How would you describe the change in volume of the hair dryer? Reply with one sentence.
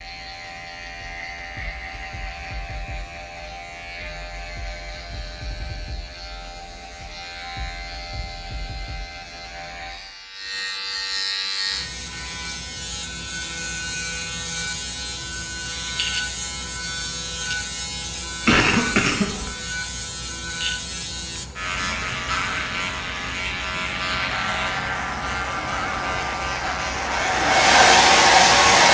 The volume of the hair dryer goes up.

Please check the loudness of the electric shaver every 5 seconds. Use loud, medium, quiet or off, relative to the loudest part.
medium, medium, loud, loud, loud, loud.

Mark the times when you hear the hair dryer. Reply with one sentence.
You can hear the hair dryer from 24.4 to 28.8 s.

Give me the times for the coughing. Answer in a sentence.
You can hear the coughing from 18.4 to 19.5 s.